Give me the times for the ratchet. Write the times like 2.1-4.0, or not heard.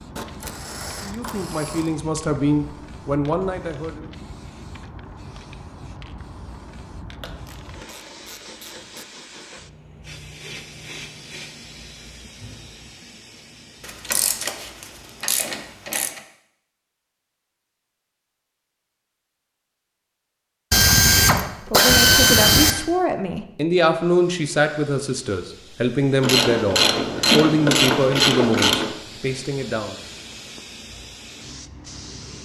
0.1-2.0, 7.2-9.1, 13.8-16.2, 20.7-22.8, 26.2-28.9.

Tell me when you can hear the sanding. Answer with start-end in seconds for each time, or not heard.
not heard.